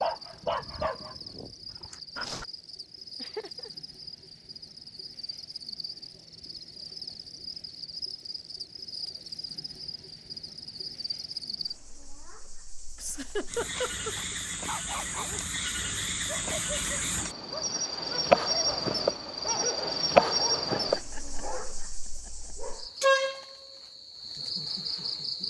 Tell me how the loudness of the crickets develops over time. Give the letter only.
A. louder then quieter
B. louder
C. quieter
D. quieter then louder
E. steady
B.